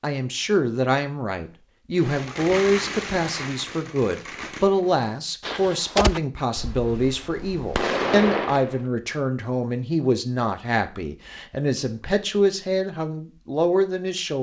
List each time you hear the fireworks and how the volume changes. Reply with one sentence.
The fireworks can be heard from 1.9 to 8.8 s, getting quieter then louder.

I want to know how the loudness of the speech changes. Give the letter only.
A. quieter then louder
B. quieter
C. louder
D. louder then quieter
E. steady
E.